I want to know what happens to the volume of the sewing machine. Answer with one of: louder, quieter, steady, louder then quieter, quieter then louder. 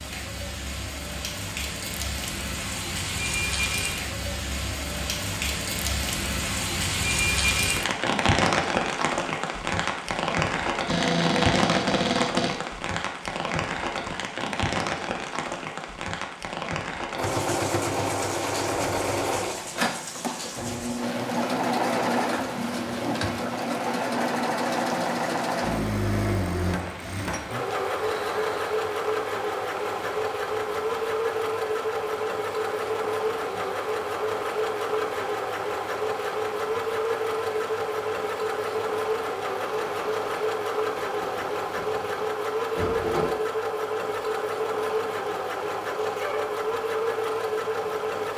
steady.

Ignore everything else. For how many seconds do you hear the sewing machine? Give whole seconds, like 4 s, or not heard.
31 s.